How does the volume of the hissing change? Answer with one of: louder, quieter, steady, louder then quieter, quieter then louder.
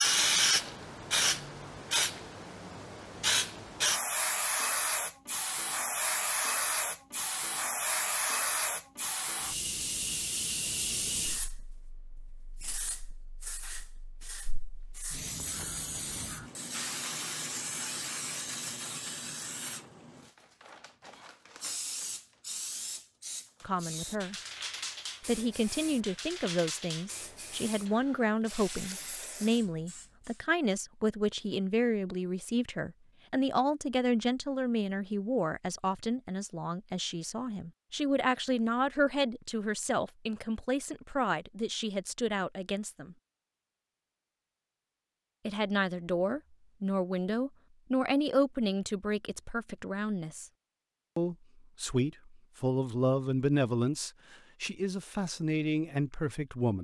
quieter.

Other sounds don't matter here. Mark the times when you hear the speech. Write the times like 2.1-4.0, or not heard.
23.6-24.4, 25.2-43.1, 45.5-50.5, 51.1-56.7.